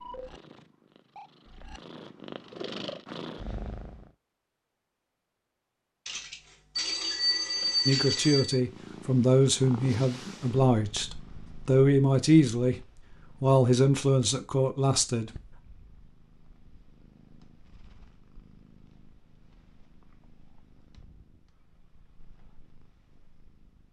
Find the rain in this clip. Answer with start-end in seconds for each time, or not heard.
not heard.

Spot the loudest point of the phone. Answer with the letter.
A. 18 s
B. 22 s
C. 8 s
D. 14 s
C.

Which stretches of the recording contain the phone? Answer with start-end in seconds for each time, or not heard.
6.0-8.6.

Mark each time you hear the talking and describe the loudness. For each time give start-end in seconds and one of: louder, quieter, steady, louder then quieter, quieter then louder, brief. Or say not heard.
7.8-12.8 quieter then louder
13.4-15.3 brief.